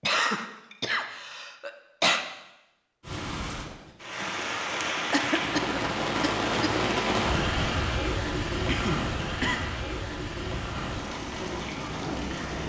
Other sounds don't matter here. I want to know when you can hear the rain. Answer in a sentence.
The rain can be heard from 3.0 to 12.6 s.